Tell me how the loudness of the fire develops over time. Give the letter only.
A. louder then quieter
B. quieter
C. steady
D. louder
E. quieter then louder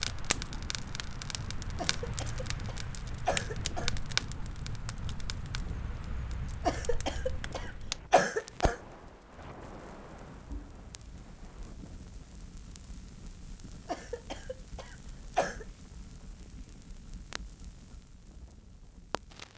B.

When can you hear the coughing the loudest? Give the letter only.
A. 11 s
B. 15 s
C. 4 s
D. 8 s
D.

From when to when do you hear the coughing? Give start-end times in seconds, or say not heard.
1.8-3.9, 6.7-8.8, 13.8-15.7.